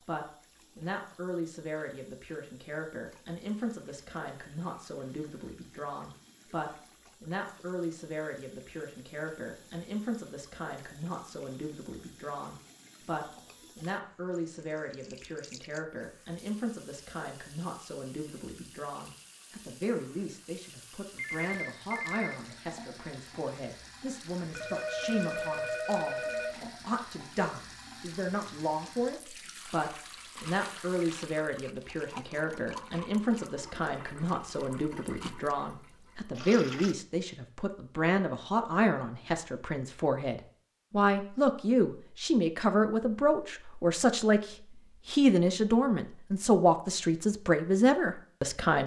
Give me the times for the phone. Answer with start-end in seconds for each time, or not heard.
21.1-22.4, 24.5-26.7.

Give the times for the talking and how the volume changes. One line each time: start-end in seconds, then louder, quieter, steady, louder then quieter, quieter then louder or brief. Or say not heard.
0.0-48.8 louder.